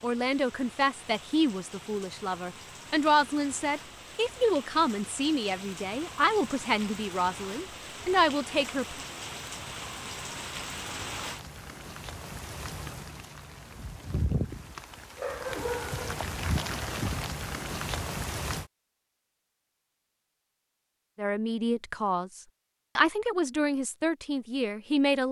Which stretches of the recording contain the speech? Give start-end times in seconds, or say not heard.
0.0-9.0, 21.1-25.2.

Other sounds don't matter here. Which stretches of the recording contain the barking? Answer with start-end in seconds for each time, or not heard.
15.2-16.2.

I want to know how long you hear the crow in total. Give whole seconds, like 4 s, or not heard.
not heard.